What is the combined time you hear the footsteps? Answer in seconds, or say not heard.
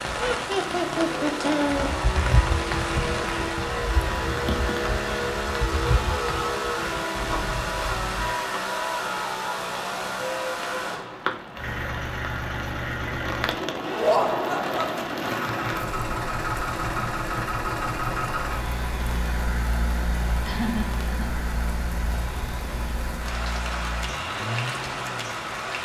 7 s.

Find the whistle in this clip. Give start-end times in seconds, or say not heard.
not heard.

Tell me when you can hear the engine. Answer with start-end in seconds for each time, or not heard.
0.0-25.8.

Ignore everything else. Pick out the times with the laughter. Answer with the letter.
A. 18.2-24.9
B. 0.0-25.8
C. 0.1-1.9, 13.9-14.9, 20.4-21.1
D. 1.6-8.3
C.